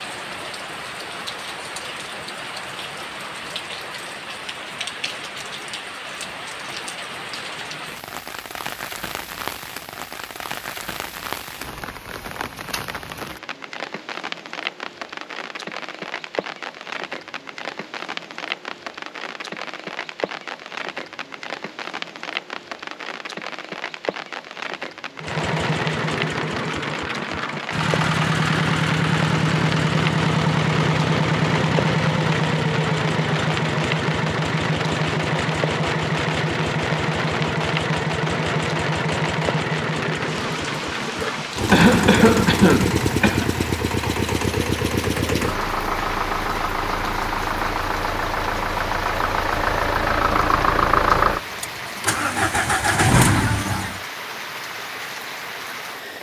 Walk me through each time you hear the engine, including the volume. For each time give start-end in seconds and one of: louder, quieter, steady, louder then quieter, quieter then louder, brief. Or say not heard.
25.2-54.0 steady.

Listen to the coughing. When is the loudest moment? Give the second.
42 s.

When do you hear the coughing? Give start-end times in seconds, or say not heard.
41.0-43.5.